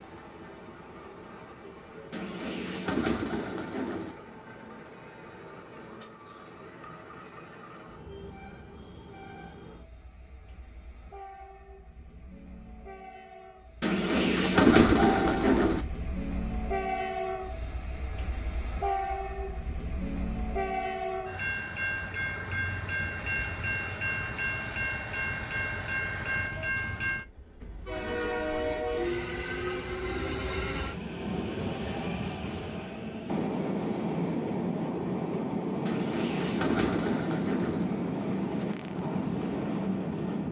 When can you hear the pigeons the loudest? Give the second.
15 s.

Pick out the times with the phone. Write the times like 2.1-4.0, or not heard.
not heard.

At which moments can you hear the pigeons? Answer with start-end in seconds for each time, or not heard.
2.1-4.2, 13.8-15.8, 35.9-37.9.